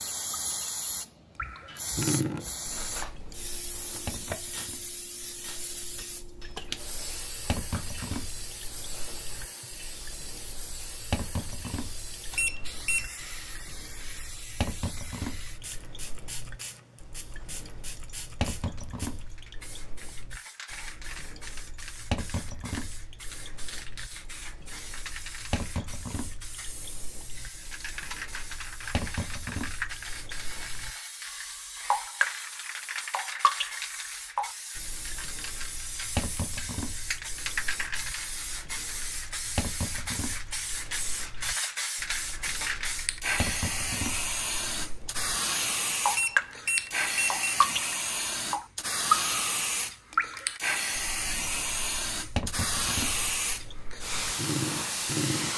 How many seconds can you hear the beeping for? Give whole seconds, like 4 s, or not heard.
2 s.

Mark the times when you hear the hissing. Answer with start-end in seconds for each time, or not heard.
0.0-55.5.